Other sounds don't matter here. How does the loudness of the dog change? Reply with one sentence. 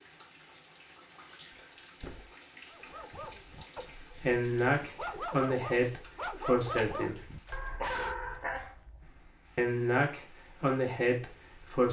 The loudness of the dog goes up.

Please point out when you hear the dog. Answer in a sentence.
You can hear the dog from 2.6 to 8.8 s.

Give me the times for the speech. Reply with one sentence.
You can hear the speech from 4.0 to 7.2 s and from 9.6 to 11.8 s.